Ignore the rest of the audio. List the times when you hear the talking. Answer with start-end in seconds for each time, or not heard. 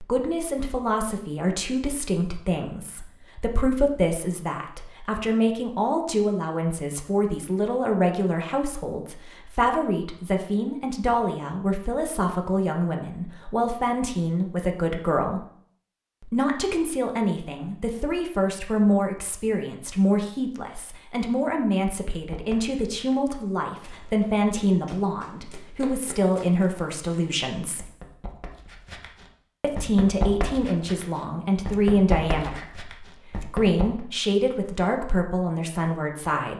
0.0-15.4, 16.2-27.9, 29.6-36.5.